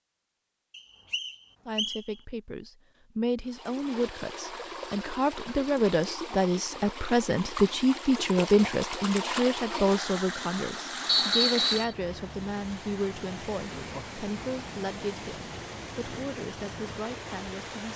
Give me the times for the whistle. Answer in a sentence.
The whistle can be heard from 0.8 to 2.0 s and from 11.1 to 11.9 s.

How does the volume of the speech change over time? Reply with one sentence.
The loudness of the speech goes up, then down.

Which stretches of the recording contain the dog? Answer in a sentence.
The dog can't be heard in this clip.